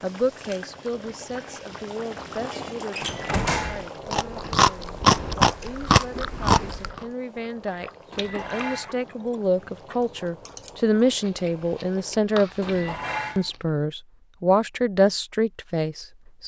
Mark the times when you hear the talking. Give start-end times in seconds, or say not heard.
0.0-16.4.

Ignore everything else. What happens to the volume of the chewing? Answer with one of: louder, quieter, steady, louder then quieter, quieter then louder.
quieter then louder.